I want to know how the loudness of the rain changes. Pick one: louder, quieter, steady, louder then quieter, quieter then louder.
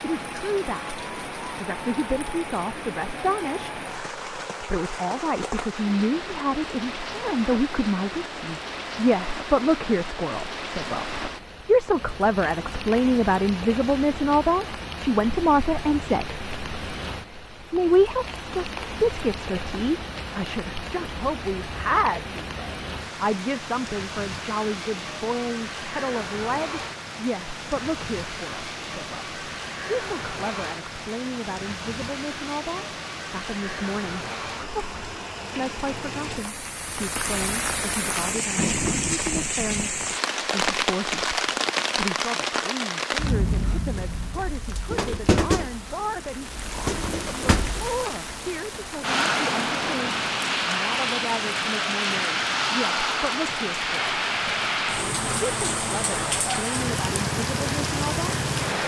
louder.